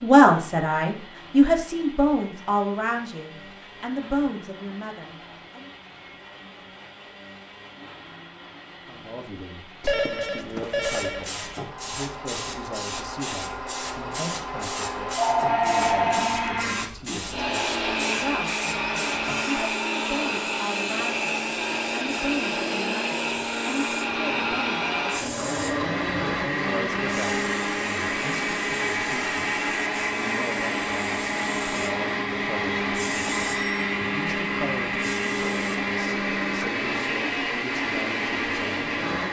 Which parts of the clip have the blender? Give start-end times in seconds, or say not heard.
0.0-39.2.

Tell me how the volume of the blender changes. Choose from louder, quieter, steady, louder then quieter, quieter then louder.
louder.